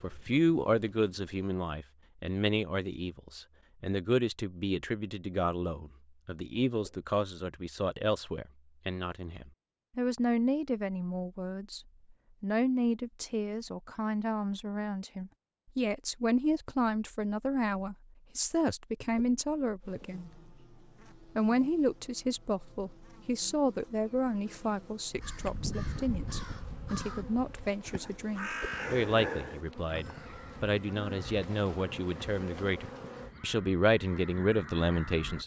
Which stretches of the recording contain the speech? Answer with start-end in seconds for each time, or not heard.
0.0-11.8, 12.4-20.4, 21.4-35.4.